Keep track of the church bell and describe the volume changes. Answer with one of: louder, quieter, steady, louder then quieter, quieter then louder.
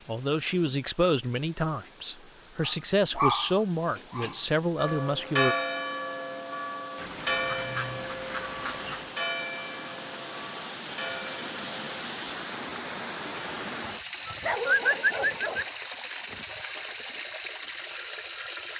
quieter.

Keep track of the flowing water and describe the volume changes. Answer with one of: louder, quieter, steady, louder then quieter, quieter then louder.
louder.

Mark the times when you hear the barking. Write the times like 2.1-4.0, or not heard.
2.6-4.3, 14.2-15.7.